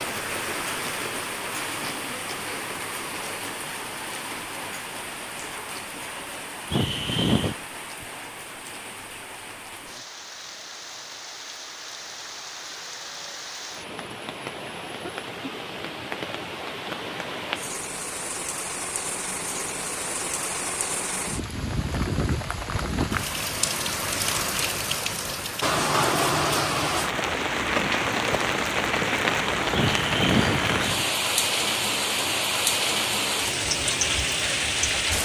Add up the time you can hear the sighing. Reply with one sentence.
The sighing can be heard for 2 seconds in total.